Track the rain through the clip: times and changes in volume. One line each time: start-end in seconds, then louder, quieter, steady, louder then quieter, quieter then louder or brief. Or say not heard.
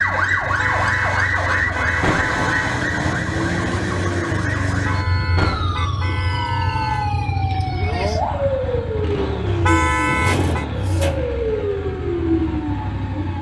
not heard.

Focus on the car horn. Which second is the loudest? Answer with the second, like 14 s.
10 s.